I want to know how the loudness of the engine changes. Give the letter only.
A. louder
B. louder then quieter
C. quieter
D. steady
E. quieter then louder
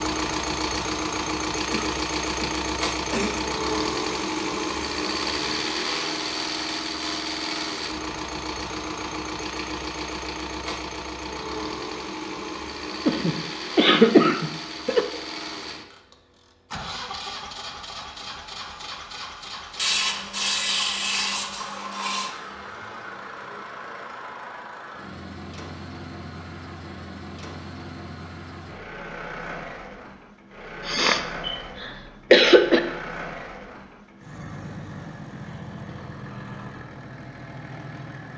C.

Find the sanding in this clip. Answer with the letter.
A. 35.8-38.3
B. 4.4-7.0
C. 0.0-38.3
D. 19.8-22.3
D.